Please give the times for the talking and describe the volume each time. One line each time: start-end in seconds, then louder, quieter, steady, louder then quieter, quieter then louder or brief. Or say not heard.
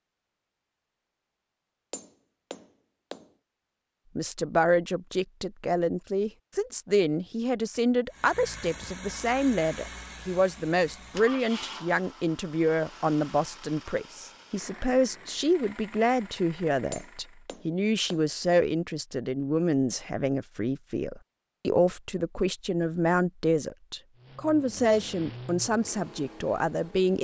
4.2-27.1 steady.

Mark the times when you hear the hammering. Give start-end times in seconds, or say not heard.
1.9-3.3, 16.9-18.2.